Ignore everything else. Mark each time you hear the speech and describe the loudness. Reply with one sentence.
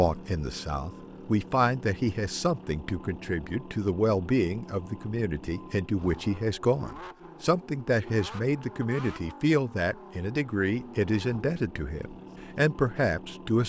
The speech can be heard from 0.0 to 13.6 s, at a steady volume.